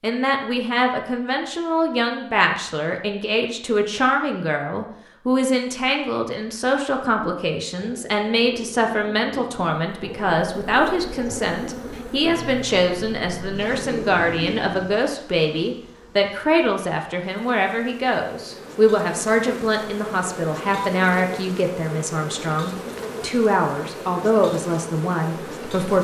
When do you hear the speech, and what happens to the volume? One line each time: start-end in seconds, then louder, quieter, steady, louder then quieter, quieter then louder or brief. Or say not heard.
0.0-25.9 steady.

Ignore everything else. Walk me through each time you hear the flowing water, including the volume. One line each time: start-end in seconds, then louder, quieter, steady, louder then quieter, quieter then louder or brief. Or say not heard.
not heard.